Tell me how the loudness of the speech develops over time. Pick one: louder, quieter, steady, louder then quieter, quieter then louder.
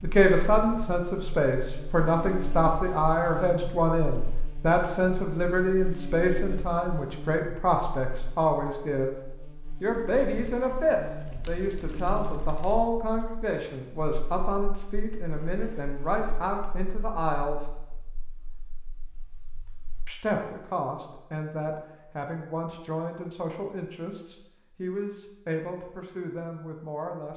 quieter.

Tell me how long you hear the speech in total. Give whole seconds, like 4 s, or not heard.
24 s.